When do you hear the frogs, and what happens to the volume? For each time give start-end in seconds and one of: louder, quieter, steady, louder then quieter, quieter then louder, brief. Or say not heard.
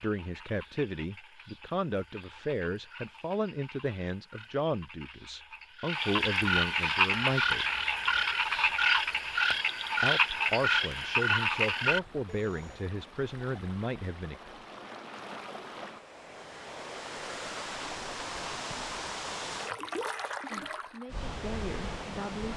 0.0-12.8 louder.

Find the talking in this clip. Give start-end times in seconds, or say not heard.
0.0-7.7, 10.0-14.3, 20.4-22.5.